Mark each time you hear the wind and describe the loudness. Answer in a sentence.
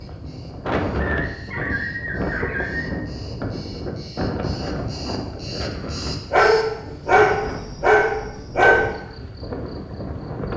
You can hear the wind from 0.0 to 10.5 s, getting quieter.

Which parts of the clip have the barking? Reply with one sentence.
You can hear the barking from 1.1 to 3.0 s and from 6.3 to 8.8 s.